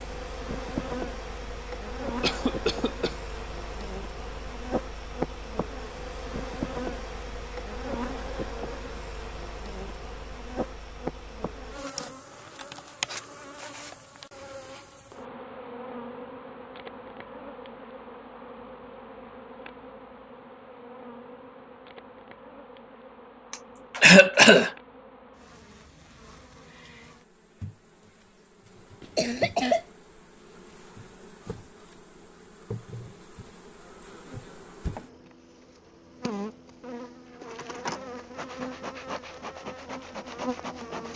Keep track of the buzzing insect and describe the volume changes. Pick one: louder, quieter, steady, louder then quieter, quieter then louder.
quieter then louder.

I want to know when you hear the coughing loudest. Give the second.
24 s.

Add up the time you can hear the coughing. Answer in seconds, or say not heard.
3 s.